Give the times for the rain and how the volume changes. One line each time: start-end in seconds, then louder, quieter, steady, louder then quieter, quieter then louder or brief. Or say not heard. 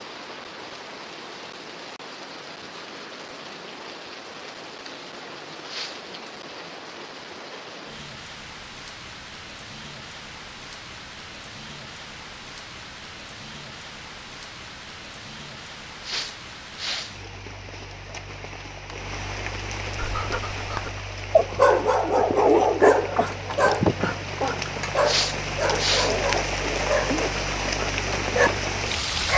0.0-29.3 louder.